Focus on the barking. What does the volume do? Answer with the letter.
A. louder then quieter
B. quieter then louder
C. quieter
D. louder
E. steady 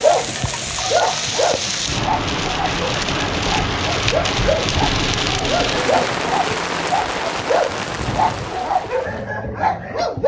B.